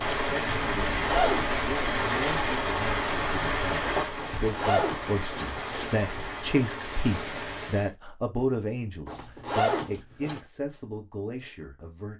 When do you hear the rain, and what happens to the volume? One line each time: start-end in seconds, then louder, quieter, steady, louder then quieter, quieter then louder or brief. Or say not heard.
0.0-7.9 quieter.